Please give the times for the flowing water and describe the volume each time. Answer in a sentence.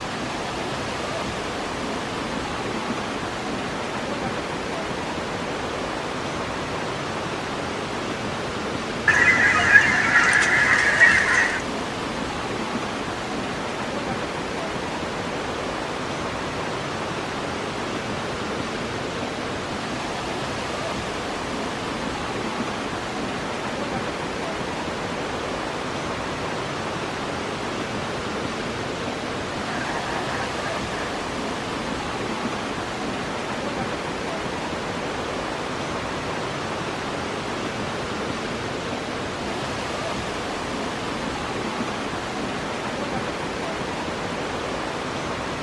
The flowing water can be heard from 0.0 to 45.5 s, at a steady volume.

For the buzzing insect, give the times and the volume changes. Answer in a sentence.
The buzzing insect can't be heard in this clip.